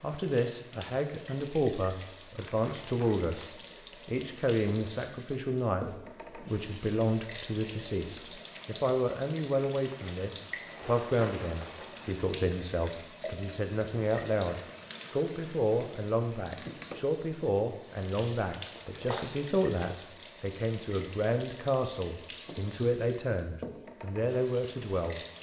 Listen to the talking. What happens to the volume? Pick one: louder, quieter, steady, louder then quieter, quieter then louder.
steady.